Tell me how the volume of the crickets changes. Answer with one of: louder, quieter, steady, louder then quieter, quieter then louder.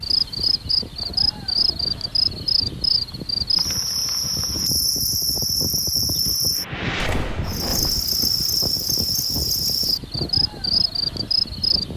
steady.